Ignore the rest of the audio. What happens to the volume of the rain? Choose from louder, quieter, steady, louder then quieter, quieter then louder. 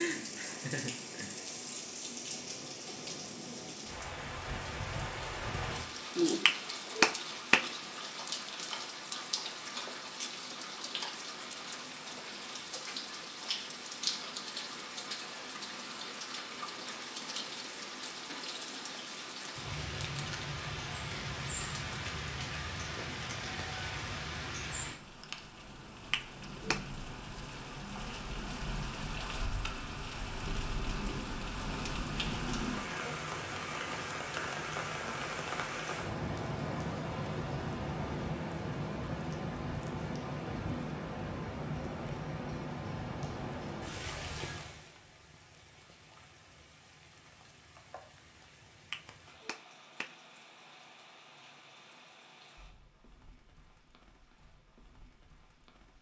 quieter.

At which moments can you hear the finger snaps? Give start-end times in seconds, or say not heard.
6.5-7.7, 26.1-26.8, 48.9-50.1.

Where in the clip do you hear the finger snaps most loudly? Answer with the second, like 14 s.
7 s.